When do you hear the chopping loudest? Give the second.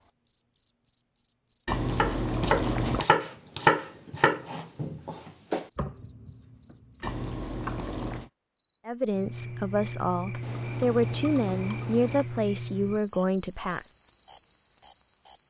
4 s.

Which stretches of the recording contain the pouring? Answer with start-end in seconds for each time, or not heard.
1.6-3.0, 7.0-8.3, 10.4-12.2.